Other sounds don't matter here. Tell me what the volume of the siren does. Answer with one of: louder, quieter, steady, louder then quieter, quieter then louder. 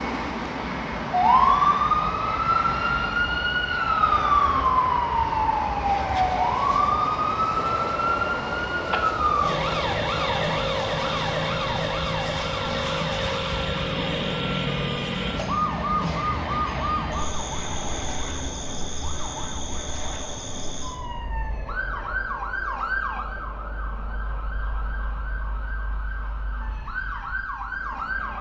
quieter.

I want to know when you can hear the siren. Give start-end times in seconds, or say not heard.
0.0-28.3.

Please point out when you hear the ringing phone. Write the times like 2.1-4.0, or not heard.
not heard.